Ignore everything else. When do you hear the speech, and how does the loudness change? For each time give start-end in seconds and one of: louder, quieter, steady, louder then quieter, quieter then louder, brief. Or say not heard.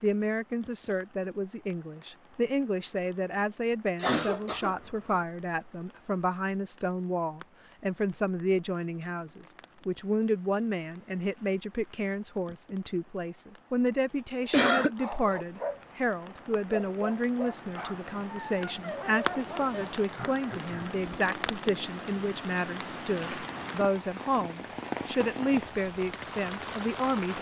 0.0-27.3 steady.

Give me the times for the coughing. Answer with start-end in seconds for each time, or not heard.
4.0-5.2, 14.1-14.9, 20.1-21.0.